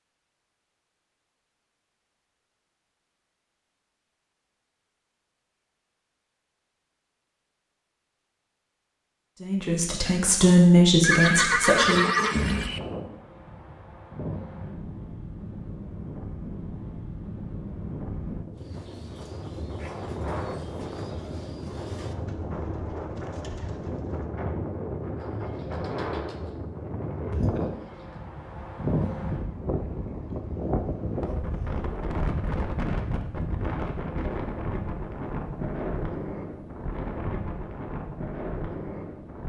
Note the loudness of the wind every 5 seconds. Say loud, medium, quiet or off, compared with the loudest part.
off, off, medium, medium, loud, loud, loud, loud.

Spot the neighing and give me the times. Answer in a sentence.
The neighing can be heard from 11.0 to 12.8 s.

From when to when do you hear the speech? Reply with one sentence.
The speech can be heard from 9.4 to 12.1 s.